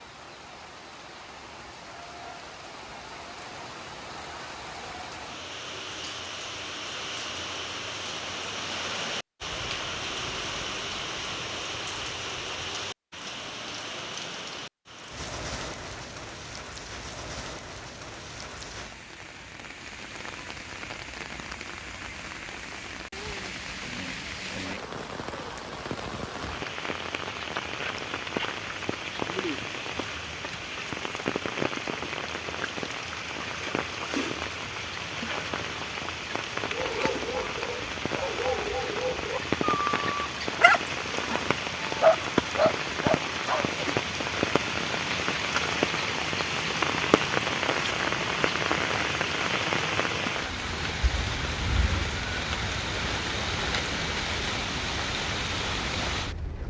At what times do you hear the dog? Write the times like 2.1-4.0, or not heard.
36.6-43.6.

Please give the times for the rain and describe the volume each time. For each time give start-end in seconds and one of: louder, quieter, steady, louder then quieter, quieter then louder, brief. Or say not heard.
0.0-56.6 louder.